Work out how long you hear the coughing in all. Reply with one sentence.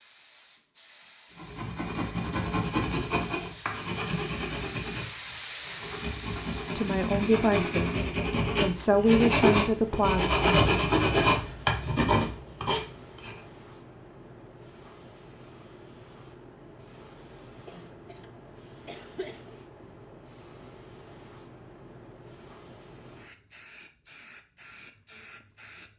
The coughing can be heard for 2 seconds in total.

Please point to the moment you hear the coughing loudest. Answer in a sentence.
The volume of the coughing peaks at 19 seconds.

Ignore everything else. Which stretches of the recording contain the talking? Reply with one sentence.
The talking can be heard from 6.8 to 10.2 s.